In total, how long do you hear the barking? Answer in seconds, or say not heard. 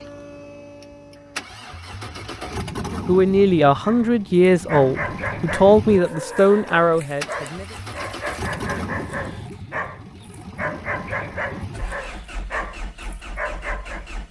10 s.